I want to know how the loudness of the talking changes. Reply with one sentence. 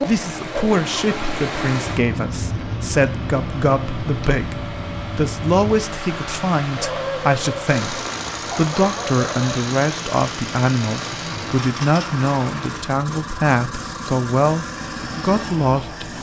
The volume of the talking stays about the same.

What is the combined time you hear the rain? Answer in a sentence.
You can hear the rain for 13 seconds altogether.